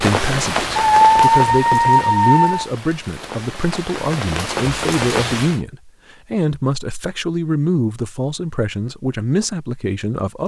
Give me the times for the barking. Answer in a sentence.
The barking can be heard from 0.8 to 2.6 s.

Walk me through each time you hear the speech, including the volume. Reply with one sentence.
You can hear the speech from 0.0 to 10.4 s, at a steady volume.